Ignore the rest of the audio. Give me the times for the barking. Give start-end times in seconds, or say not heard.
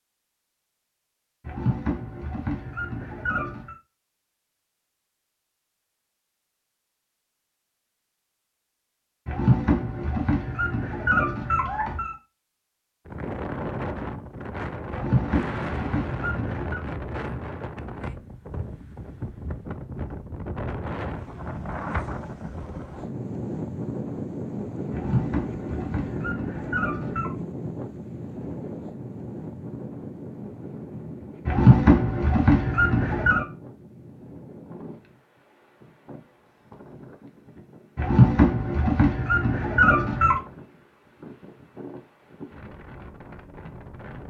1.4-3.8, 9.2-12.2, 14.9-16.8, 24.9-27.3, 31.4-33.5, 38.0-40.4.